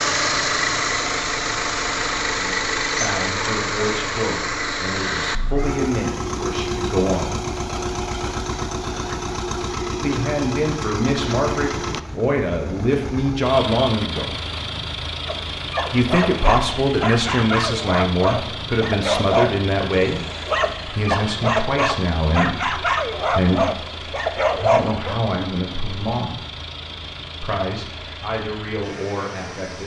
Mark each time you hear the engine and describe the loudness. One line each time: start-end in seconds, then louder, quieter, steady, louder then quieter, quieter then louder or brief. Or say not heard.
0.0-29.8 quieter.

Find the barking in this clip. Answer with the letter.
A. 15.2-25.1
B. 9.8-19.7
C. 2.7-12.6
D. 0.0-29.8
A.